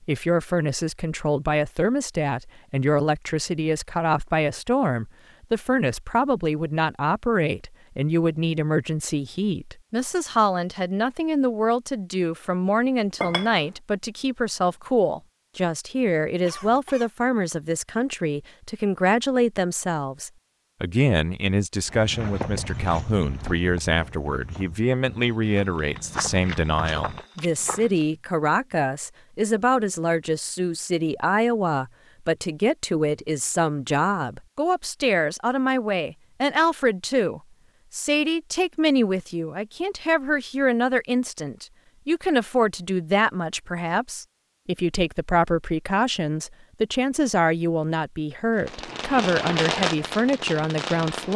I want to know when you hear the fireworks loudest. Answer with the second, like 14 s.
50 s.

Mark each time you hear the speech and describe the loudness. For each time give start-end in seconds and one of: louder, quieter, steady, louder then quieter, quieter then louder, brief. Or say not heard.
0.1-51.3 steady.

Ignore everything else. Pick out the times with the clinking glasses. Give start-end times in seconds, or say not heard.
13.2-13.7.